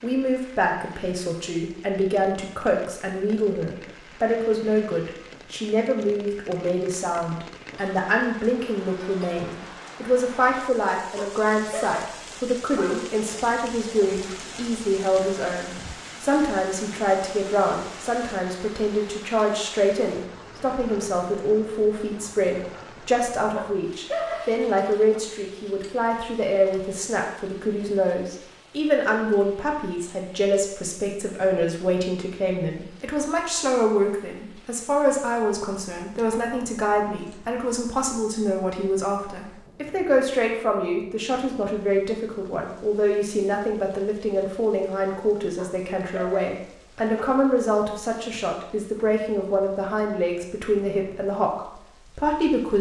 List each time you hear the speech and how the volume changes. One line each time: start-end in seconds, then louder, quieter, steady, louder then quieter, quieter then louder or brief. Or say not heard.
0.0-52.7 steady.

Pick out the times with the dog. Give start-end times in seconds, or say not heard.
11.2-13.1, 23.6-25.2, 45.5-47.5.